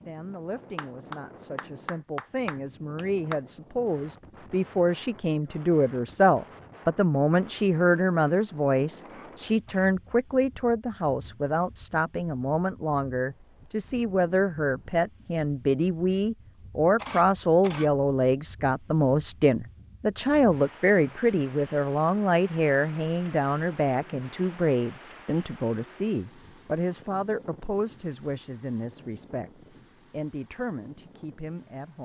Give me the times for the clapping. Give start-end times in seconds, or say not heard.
0.8-3.4.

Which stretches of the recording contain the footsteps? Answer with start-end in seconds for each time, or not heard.
not heard.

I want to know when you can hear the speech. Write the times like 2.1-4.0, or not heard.
0.0-32.0.